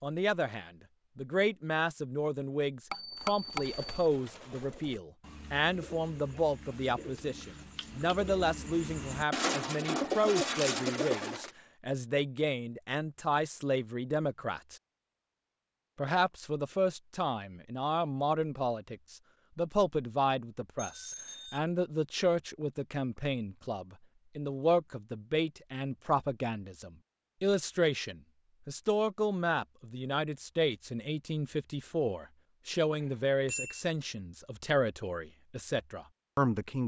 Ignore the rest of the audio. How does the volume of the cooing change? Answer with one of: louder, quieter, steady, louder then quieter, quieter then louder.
louder.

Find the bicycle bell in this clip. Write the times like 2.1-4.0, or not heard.
2.9-4.0, 20.8-21.6, 33.0-33.9.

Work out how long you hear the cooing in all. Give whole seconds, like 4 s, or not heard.
8 s.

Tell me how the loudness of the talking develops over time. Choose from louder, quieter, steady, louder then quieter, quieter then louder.
steady.